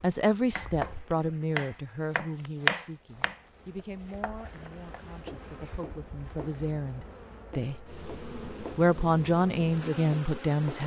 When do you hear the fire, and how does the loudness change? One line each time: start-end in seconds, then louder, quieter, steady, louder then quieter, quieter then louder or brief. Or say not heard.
not heard.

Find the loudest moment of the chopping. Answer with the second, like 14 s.
3 s.